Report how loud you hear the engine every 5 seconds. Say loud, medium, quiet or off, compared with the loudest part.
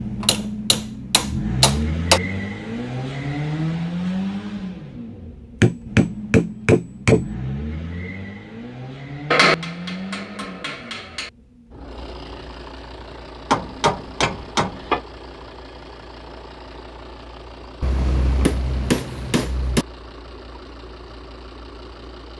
loud, medium, quiet, quiet, quiet.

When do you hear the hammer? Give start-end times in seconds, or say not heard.
0.2-2.2, 5.6-7.2, 9.3-11.3, 13.5-15.0, 17.8-19.9.